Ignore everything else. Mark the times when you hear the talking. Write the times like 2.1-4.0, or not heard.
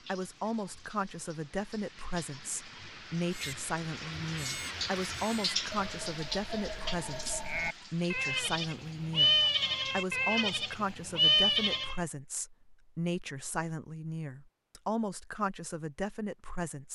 0.1-16.9.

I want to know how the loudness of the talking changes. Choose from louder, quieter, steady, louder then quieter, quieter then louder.
steady.